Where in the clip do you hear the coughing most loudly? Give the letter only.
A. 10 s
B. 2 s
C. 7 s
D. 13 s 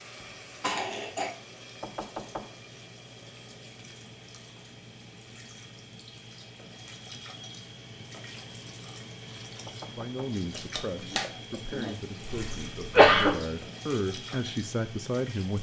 D.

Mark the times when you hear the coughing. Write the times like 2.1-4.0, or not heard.
0.6-1.3, 12.2-13.3.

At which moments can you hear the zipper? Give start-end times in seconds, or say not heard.
not heard.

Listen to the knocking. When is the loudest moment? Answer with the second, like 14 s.
2 s.